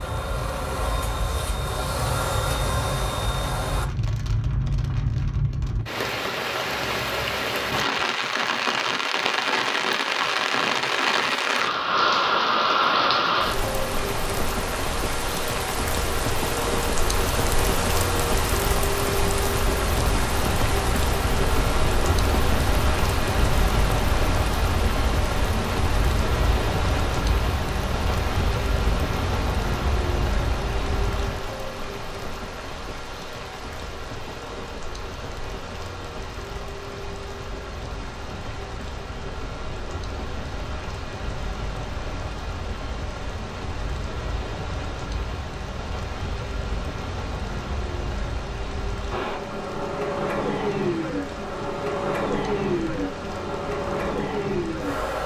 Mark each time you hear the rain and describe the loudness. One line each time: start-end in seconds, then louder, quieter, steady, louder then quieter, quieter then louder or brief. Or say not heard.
0.0-55.2 quieter.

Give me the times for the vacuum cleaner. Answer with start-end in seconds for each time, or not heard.
0.0-3.9, 49.1-55.2.